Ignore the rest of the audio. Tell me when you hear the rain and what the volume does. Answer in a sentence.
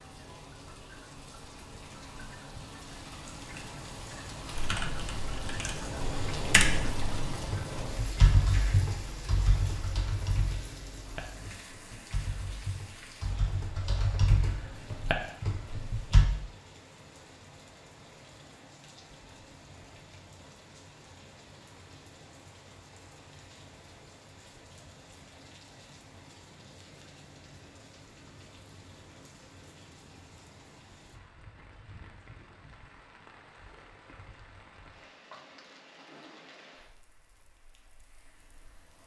You can hear the rain from 0.0 to 39.0 s, getting quieter.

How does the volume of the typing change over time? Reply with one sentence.
The volume of the typing goes down, then up.